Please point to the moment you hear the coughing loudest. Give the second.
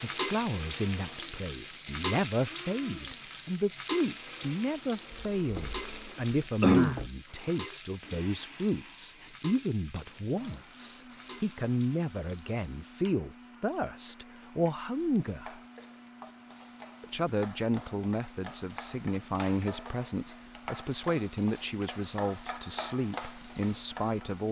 7 s.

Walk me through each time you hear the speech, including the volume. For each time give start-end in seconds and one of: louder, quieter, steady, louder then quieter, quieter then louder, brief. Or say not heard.
0.0-15.6 steady
17.0-24.4 steady.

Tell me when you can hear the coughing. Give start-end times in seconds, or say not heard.
5.1-7.1.